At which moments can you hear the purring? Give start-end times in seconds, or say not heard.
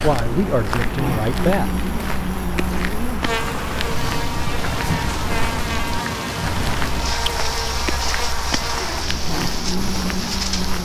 not heard.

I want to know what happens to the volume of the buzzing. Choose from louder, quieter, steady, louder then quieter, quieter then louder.
steady.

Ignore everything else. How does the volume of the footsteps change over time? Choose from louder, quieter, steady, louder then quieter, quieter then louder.
steady.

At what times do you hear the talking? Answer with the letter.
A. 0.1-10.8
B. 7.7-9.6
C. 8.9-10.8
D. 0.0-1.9
D.